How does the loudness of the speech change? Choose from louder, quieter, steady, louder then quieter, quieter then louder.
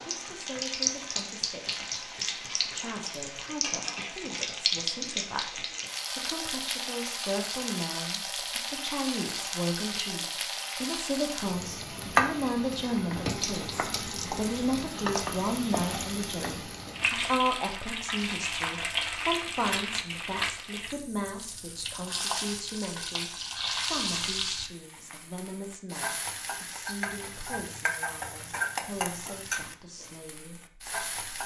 louder then quieter.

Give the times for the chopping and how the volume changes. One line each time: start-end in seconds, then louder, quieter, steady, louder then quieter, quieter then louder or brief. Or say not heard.
not heard.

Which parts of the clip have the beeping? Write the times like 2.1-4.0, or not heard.
not heard.